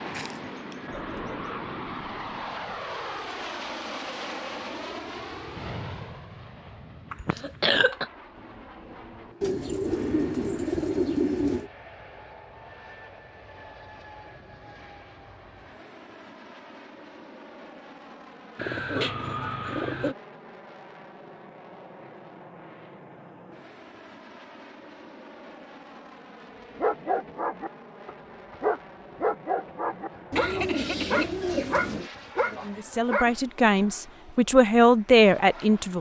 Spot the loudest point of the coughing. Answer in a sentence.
The loudest moment of the coughing is at 8 seconds.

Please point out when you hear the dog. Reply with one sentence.
You can hear the dog from 26.8 to 33.4 s.